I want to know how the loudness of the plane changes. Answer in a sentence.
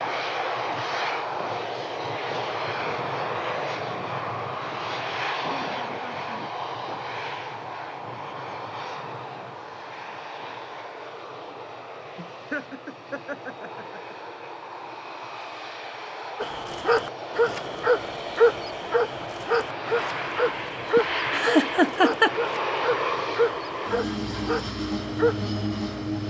The loudness of the plane goes down, then up.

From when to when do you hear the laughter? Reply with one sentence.
You can hear the laughter from 5.4 to 6.5 s, from 12.2 to 14.2 s and from 20.9 to 22.4 s.